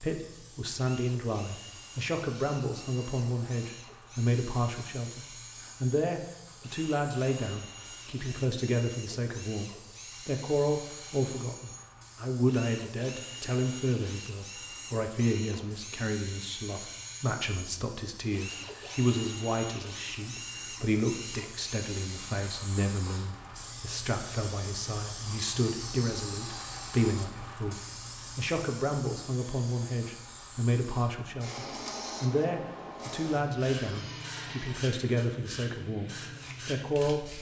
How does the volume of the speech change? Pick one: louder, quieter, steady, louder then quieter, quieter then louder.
steady.